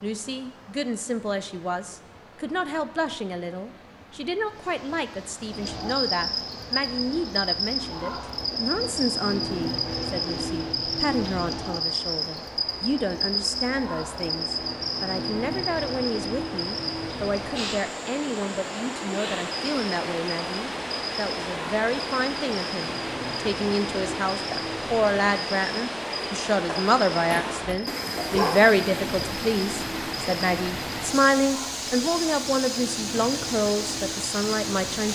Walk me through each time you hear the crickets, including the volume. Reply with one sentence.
The crickets can be heard from 5.5 to 35.1 s, getting quieter.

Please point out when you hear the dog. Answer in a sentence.
You can hear the dog from 26.6 to 28.6 s.